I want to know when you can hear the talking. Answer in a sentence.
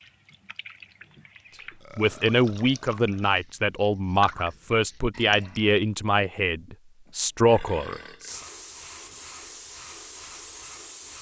The talking can be heard from 1.9 to 8.4 s.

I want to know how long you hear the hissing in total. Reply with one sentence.
The hissing can be heard for 3 seconds in total.